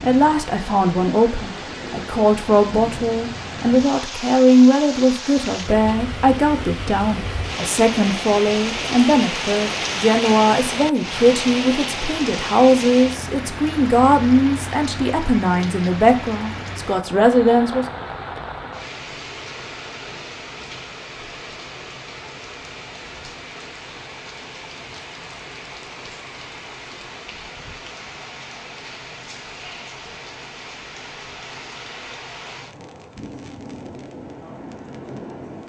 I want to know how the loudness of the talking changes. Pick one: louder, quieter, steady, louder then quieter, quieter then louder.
steady.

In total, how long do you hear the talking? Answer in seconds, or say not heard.
18 s.